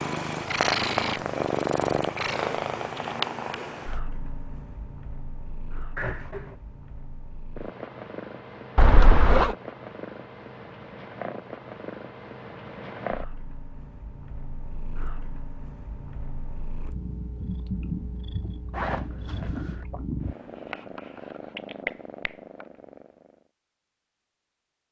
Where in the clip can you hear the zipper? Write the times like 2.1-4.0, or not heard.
6.0-6.5, 8.8-9.6, 18.7-19.9.